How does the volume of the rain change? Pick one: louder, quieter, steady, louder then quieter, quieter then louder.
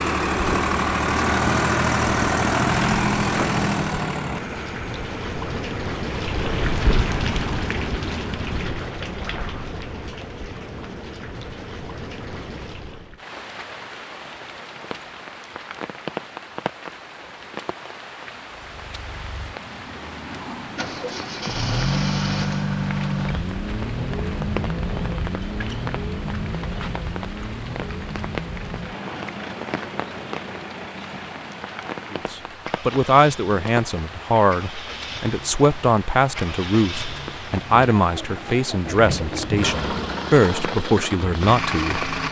quieter.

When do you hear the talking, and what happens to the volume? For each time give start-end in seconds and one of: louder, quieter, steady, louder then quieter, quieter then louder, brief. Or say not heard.
32.1-42.1 steady.